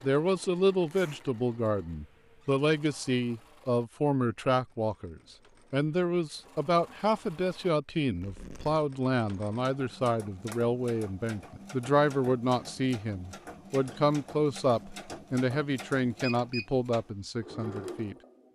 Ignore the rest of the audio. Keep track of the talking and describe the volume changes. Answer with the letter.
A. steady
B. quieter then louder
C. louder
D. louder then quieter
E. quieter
A.